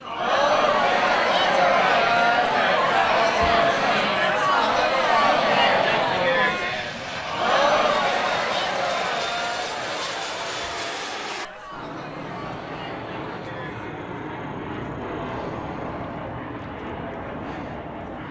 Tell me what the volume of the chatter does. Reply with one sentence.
The loudness of the chatter goes down.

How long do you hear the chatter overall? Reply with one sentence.
The chatter can be heard for 18 seconds in total.